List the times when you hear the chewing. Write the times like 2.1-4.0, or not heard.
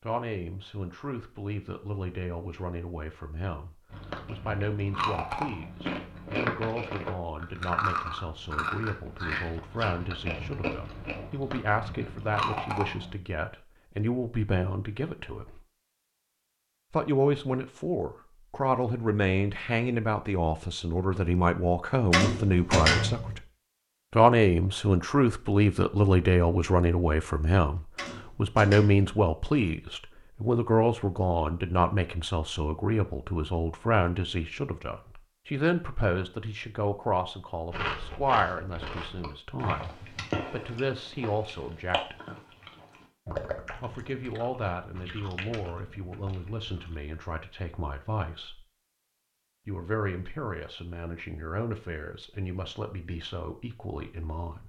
3.9-13.2, 37.7-47.0.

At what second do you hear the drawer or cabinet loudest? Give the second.
23 s.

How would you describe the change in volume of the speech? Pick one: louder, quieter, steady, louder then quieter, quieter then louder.
louder then quieter.